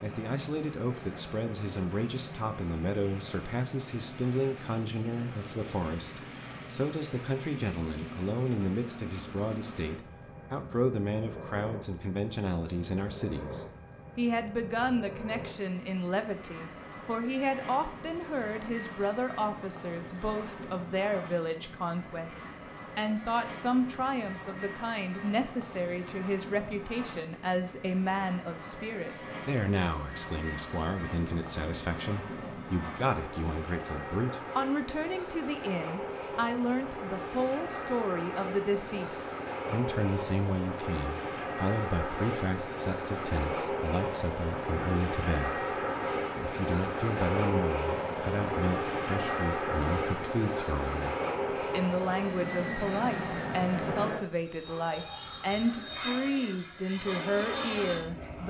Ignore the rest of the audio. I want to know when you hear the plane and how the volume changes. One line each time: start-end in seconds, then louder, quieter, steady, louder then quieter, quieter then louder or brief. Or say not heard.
0.0-58.4 louder.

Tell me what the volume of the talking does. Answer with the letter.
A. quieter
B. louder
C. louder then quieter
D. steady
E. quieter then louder
D.